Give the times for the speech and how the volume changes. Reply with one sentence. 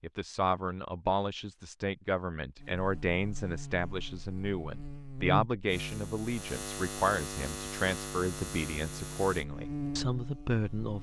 You can hear the speech from 0.0 to 10.9 s, at a steady volume.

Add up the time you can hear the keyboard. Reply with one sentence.
You can't hear the keyboard here.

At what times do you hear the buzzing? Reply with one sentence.
You can hear the buzzing from 2.5 to 10.9 s.